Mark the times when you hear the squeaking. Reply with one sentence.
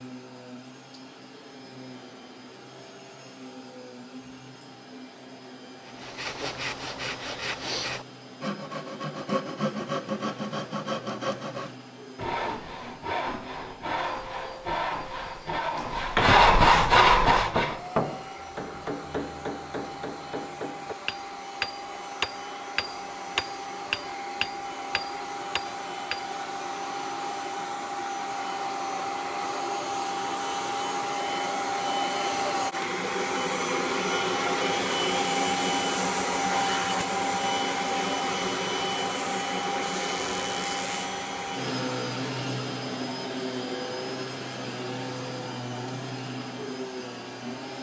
The squeaking can be heard from 39.8 to 41.1 s.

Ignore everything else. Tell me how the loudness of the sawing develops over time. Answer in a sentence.
The loudness of the sawing goes up.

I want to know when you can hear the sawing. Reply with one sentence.
The sawing can be heard from 5.8 to 17.8 s.